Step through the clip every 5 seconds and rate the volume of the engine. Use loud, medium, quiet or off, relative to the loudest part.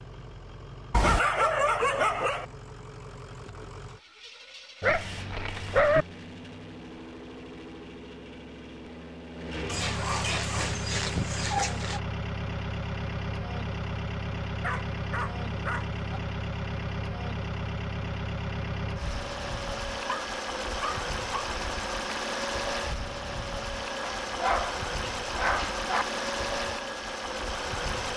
quiet, medium, loud, loud, loud, loud.